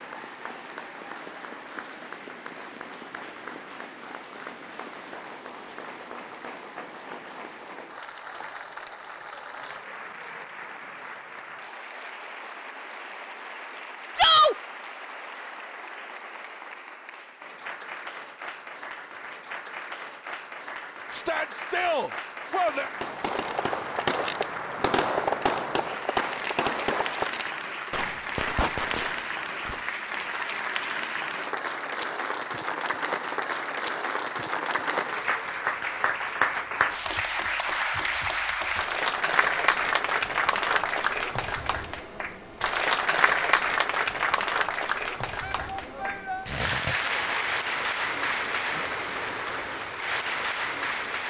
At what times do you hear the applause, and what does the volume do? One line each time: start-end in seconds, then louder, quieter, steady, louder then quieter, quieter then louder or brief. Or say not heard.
0.0-51.2 louder.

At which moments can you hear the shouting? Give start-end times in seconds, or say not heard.
14.2-14.6, 21.1-22.9, 45.4-46.5.